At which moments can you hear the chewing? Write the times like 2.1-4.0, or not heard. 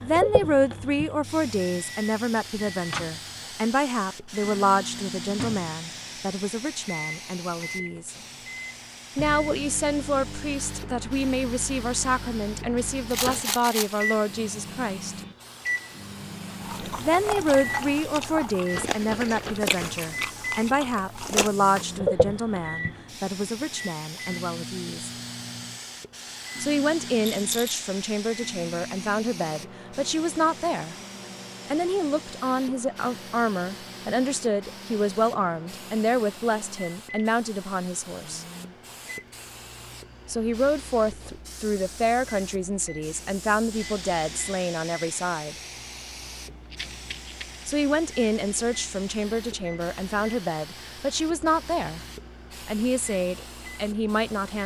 16.6-21.9.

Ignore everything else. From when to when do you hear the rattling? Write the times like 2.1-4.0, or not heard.
13.1-14.0, 27.2-27.8, 46.7-47.8.